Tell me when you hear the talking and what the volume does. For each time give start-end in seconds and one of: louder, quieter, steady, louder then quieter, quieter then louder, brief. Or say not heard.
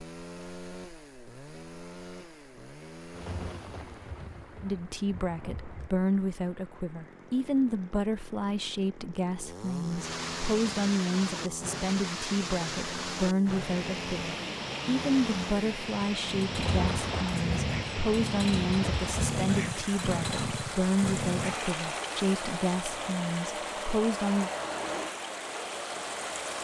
4.6-24.5 steady.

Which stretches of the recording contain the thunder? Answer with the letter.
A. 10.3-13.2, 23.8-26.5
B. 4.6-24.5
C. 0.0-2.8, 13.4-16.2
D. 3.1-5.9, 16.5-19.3
D.